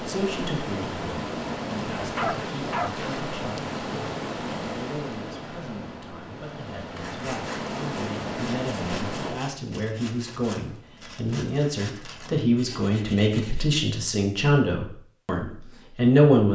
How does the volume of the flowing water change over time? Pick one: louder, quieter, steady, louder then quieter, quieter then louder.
quieter then louder.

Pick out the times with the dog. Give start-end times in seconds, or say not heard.
2.1-3.3.